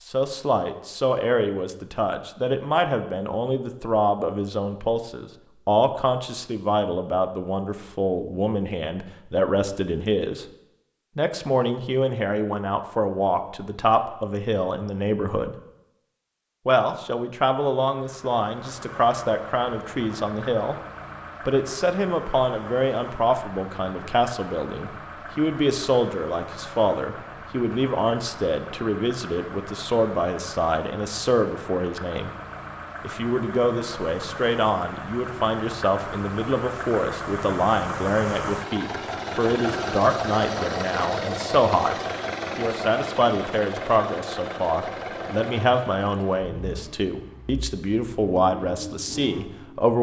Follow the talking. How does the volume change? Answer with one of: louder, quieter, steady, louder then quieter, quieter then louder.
steady.